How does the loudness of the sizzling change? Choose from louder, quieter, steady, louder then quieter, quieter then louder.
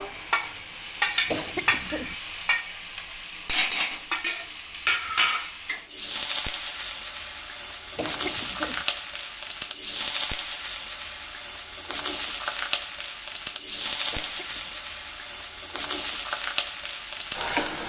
steady.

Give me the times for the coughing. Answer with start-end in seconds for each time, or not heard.
1.2-2.1, 8.0-8.8, 14.1-14.8.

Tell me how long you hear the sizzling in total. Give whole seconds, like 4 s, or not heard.
18 s.